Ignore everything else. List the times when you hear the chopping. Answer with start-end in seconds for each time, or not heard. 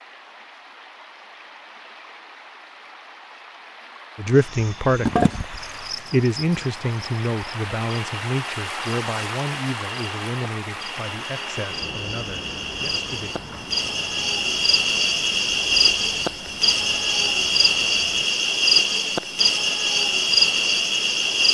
not heard.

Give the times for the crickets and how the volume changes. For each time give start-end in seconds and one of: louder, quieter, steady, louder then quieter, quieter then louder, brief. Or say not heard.
4.3-21.4 quieter then louder.